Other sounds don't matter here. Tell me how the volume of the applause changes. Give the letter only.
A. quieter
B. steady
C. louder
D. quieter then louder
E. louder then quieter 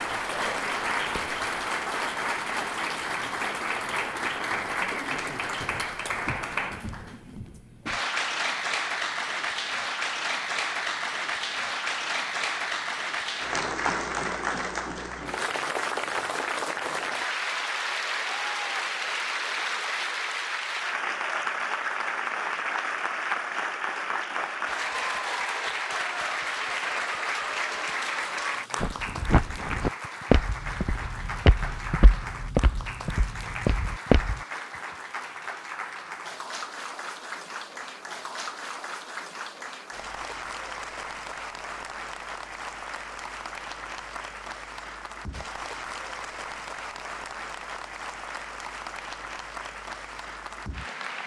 A.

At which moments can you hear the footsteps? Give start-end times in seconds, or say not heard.
0.1-1.4, 28.8-34.4.